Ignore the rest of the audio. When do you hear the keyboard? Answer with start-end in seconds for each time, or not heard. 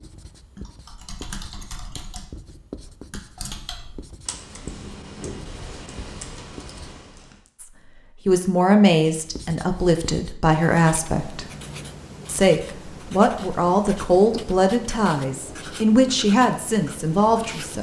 0.6-7.5.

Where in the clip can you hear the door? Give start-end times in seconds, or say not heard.
4.7-5.5.